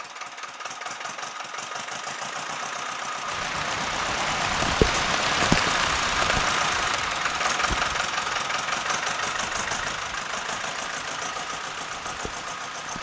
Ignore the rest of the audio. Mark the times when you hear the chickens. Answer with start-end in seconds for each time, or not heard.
not heard.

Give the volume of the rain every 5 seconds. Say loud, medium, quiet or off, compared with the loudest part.
loud, loud, quiet.